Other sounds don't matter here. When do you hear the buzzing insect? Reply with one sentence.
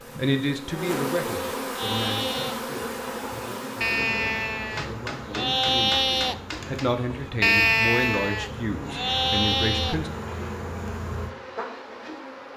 The buzzing insect can be heard from 0.0 to 12.5 s.